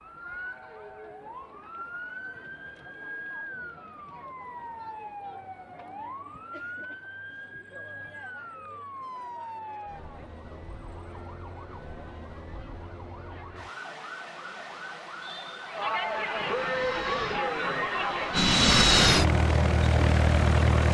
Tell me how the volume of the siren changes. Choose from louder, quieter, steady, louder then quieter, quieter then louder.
steady.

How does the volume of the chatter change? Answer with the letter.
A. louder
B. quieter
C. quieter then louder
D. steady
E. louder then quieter
A.